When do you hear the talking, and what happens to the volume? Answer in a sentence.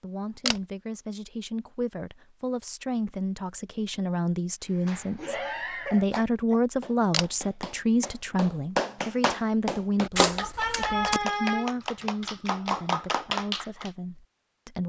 The talking can be heard from 0.0 to 14.8 s, getting louder then quieter.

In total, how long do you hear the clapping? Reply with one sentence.
The clapping can be heard for 9 seconds in total.